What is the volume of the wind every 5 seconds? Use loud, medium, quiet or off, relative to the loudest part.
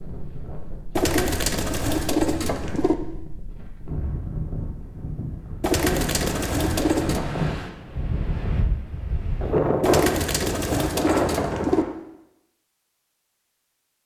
medium, loud, loud.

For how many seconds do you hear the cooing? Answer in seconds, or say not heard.
6 s.